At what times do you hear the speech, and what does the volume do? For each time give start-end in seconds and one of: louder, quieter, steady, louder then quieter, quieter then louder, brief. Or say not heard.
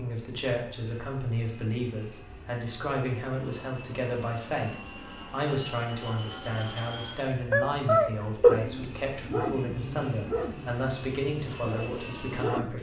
0.0-12.7 steady.